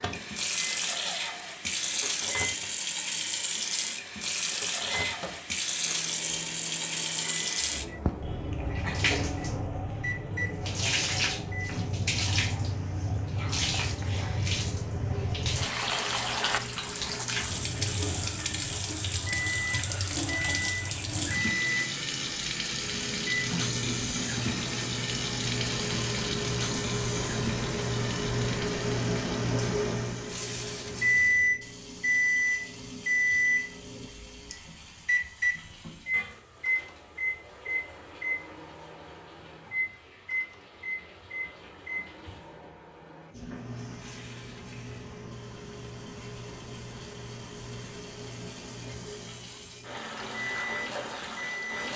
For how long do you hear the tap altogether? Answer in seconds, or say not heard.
52 s.